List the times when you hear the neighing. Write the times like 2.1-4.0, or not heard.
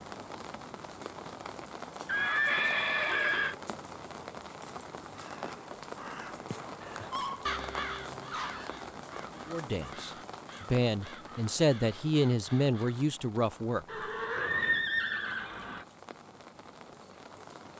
2.0-3.5, 13.8-15.8.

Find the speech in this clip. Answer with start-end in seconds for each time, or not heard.
9.4-13.8.